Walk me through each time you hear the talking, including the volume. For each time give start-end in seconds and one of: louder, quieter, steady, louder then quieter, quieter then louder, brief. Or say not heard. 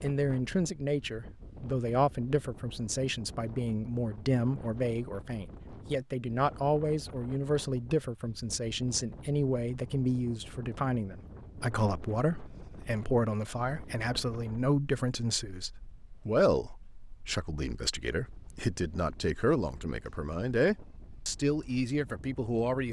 0.0-22.8 steady.